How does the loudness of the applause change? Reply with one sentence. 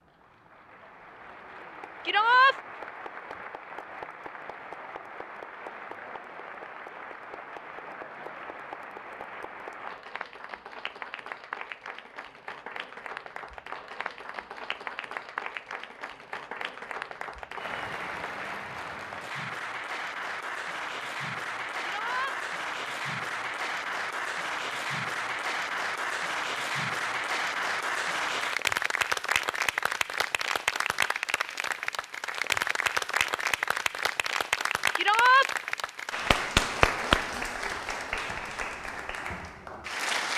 The volume of the applause goes up.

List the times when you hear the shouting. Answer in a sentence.
You can hear the shouting from 2.0 to 2.5 s, from 21.8 to 22.4 s and from 35.0 to 35.5 s.